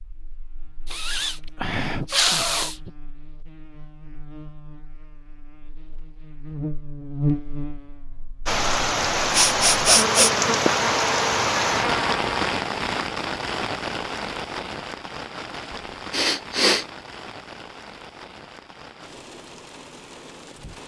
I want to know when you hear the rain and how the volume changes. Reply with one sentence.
You can hear the rain from 8.4 to 20.8 s, getting quieter.